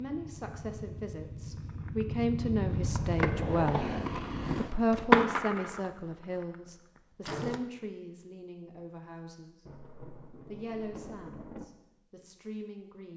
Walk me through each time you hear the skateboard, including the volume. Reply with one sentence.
You can hear the skateboard from 1.9 to 7.6 s, getting louder then quieter.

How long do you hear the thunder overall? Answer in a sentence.
The thunder can be heard for 2 seconds in total.